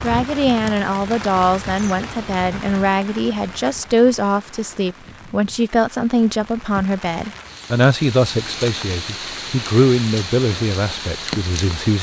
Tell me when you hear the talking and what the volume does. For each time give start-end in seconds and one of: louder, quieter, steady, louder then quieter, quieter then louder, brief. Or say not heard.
0.0-11.9 steady.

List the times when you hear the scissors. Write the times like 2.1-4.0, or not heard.
not heard.